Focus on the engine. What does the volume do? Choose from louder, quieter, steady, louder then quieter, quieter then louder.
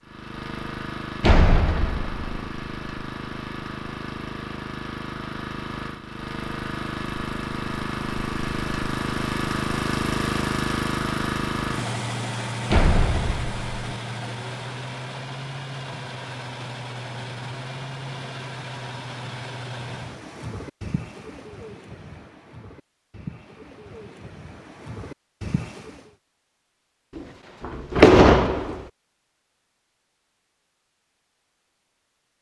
louder then quieter.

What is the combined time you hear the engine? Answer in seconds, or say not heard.
20 s.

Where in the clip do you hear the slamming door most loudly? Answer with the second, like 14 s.
28 s.